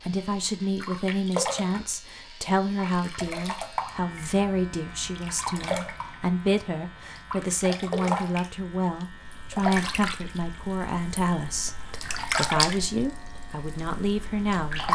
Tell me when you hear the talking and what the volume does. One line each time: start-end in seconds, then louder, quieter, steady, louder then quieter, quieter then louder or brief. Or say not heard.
0.0-14.8 steady.